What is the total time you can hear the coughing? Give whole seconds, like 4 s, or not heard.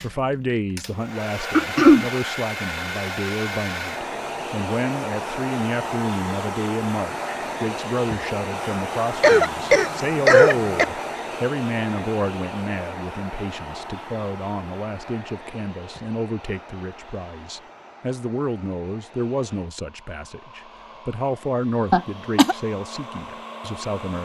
3 s.